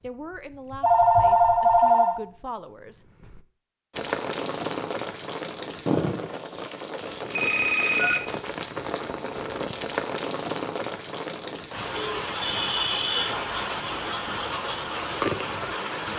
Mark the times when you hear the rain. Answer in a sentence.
You can hear the rain from 3.9 to 16.1 s.